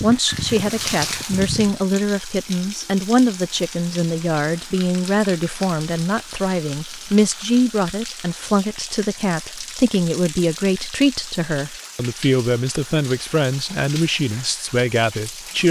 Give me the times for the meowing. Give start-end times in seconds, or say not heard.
not heard.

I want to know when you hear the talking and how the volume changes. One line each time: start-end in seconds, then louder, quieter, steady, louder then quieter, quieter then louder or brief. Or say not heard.
0.0-15.6 steady.